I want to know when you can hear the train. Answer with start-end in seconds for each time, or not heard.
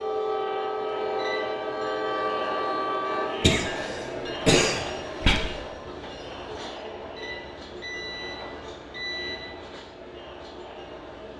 0.0-11.3.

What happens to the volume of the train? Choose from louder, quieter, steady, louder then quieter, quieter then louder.
quieter.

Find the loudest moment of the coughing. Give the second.
5 s.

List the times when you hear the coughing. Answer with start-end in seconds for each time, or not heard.
3.4-5.4.